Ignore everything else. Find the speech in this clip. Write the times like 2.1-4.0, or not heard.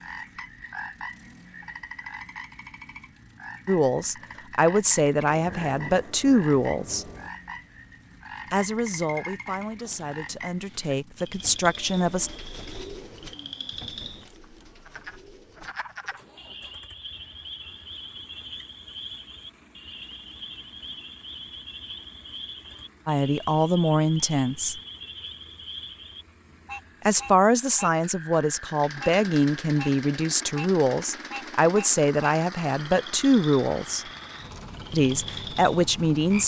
3.6-7.0, 8.5-12.3, 23.1-24.8, 27.1-34.0, 34.9-36.4.